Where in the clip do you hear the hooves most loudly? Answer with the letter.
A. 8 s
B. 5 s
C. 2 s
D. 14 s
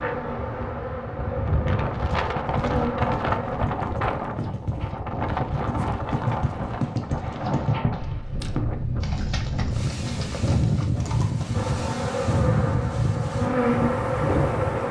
A.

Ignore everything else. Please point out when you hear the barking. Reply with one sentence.
The barking can't be heard in this clip.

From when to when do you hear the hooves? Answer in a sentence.
You can hear the hooves from 2.5 to 11.6 s.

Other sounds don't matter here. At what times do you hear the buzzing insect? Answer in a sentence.
The buzzing insect can be heard from 0.0 to 3.6 s and from 11.5 to 14.8 s.